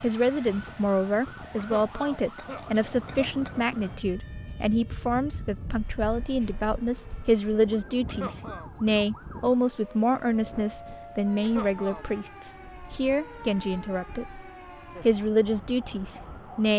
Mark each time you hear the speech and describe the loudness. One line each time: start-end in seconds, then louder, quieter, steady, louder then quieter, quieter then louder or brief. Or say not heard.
0.0-16.7 steady.